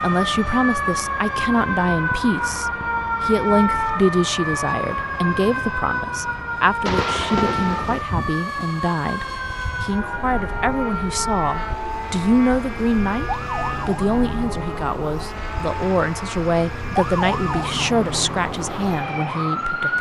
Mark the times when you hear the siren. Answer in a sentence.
You can hear the siren from 0.0 to 19.9 s.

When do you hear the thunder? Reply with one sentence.
You can hear the thunder from 6.8 to 8.1 s.